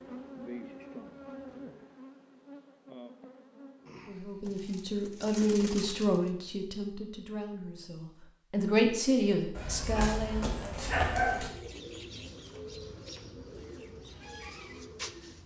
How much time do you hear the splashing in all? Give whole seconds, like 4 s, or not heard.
not heard.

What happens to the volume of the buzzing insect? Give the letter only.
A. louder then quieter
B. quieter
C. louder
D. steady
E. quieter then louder
B.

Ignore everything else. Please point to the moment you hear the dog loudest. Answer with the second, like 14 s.
11 s.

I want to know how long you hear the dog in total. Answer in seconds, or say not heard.
2 s.